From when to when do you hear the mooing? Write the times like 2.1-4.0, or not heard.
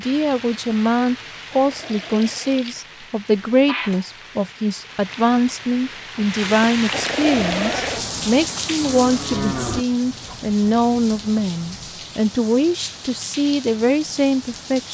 7.3-9.8.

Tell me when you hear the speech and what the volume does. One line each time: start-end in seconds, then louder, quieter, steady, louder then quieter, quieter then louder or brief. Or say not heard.
0.0-14.9 steady.